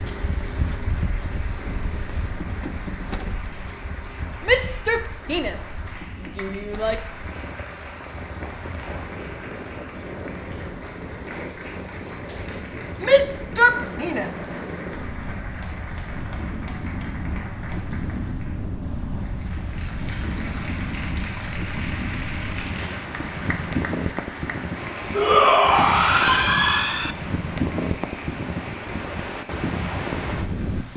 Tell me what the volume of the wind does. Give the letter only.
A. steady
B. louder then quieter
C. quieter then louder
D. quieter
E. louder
E.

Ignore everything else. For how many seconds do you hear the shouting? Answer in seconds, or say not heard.
6 s.